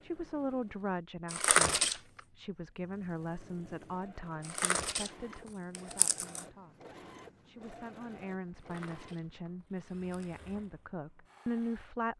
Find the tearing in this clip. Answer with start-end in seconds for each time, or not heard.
1.3-2.2, 4.4-6.5, 8.6-10.4.